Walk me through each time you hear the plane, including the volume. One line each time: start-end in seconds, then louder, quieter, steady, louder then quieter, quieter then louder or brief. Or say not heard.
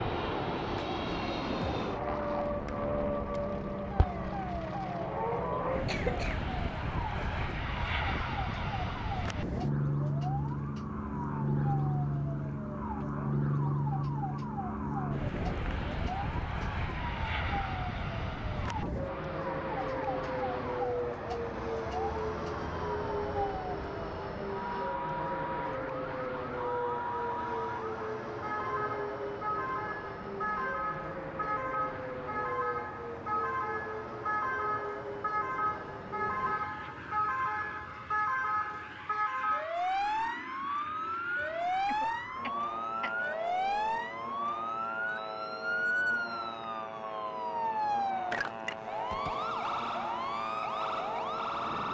0.0-51.9 quieter.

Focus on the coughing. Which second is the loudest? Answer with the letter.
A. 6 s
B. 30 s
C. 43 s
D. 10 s
A.